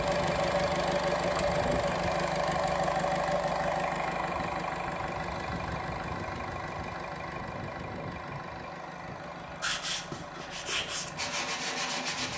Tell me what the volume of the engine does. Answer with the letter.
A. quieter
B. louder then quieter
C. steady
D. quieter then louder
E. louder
A.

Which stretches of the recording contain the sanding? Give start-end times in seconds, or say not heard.
9.6-12.3.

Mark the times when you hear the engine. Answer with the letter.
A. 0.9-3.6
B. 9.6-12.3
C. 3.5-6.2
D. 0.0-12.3
D.